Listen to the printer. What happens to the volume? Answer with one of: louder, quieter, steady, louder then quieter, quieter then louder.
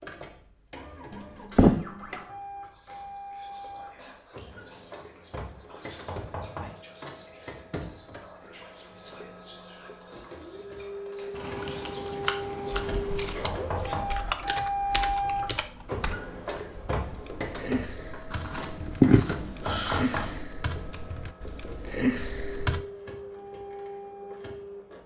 louder then quieter.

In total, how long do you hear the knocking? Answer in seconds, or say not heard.
2 s.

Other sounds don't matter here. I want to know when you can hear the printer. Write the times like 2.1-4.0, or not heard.
0.0-25.0.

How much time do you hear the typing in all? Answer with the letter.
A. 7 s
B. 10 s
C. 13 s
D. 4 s
B.